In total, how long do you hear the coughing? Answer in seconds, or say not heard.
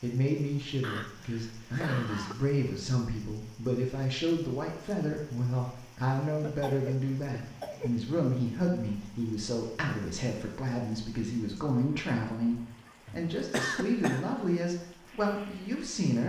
5 s.